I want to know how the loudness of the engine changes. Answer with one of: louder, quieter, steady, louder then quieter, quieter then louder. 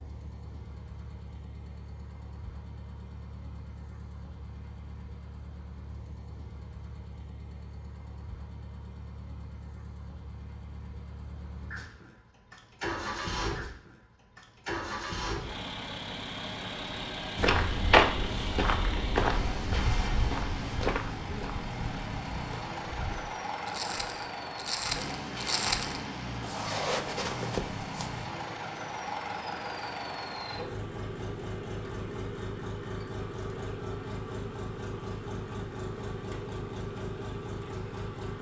louder.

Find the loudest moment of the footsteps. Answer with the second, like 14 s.
18 s.